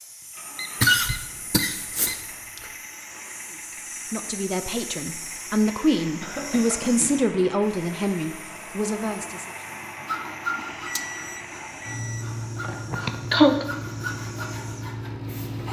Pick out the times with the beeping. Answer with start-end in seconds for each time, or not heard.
0.6-2.3, 10.6-12.2.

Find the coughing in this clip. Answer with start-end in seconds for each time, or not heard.
0.8-2.6, 6.2-7.3, 12.6-13.7.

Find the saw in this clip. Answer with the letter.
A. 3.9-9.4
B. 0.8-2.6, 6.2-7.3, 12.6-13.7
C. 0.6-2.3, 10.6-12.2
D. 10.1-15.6
D.